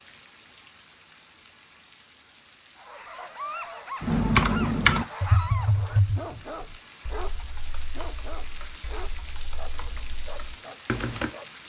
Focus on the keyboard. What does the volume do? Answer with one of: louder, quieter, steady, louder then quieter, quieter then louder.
quieter then louder.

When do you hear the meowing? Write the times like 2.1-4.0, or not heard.
not heard.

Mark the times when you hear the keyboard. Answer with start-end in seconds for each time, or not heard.
4.0-11.3.